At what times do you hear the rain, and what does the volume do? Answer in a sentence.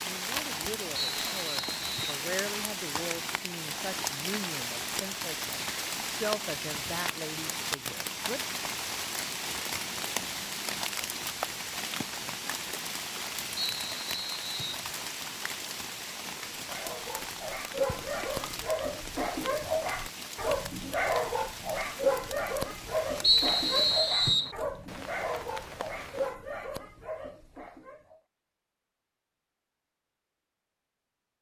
The rain can be heard from 0.0 to 26.4 s, getting quieter.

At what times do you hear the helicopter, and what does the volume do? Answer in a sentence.
The helicopter can't be heard in this clip.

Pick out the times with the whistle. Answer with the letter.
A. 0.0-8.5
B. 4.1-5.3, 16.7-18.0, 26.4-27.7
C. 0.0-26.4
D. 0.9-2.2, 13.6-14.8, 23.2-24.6
D.